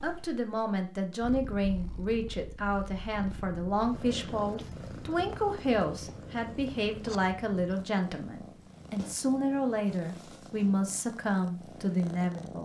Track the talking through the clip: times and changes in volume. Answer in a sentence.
You can hear the talking from 0.0 to 12.5 s, at a steady volume.